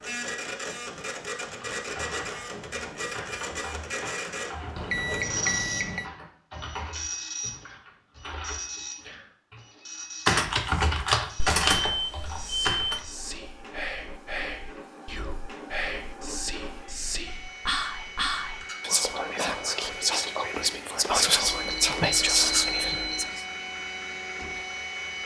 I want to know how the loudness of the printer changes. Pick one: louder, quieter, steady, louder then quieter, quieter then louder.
quieter then louder.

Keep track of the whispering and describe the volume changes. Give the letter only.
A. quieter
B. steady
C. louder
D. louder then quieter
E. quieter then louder
C.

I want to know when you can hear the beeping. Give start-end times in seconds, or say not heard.
4.8-6.0, 11.3-13.1, 21.4-23.3.